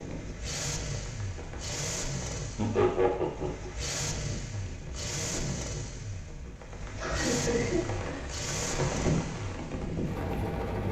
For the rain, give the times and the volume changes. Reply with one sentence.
The rain can be heard from 0.0 to 10.8 s, getting louder.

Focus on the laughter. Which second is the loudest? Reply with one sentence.
The loudest moment of the laughter is at 3 seconds.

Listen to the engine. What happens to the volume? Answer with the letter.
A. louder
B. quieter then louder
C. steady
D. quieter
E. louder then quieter
C.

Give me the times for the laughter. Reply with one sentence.
The laughter can be heard from 2.5 to 3.7 s and from 7.0 to 8.2 s.